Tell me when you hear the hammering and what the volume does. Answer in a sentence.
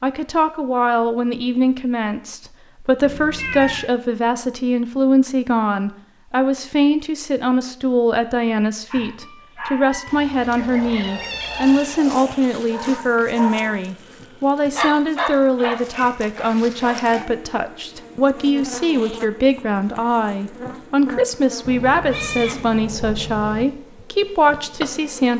The hammering can't be heard in this clip.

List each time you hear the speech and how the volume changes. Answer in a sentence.
You can hear the speech from 0.0 to 25.3 s, at a steady volume.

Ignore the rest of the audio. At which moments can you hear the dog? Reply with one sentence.
The dog can be heard from 8.9 to 17.3 s.